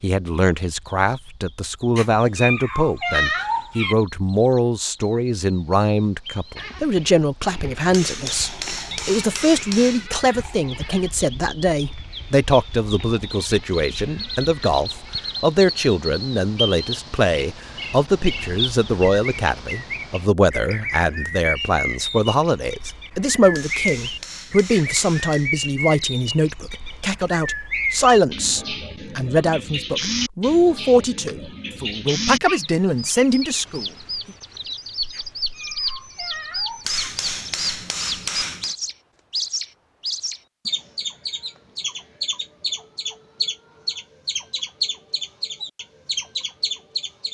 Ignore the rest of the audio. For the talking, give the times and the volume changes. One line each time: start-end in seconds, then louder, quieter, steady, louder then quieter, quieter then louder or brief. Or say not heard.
0.0-33.9 steady.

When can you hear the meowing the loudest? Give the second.
3 s.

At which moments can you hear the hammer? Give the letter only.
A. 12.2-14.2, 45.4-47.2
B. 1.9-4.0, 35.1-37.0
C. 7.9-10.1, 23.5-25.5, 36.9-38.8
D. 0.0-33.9
C.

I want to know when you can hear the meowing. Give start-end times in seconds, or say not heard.
1.9-4.0, 35.1-37.0.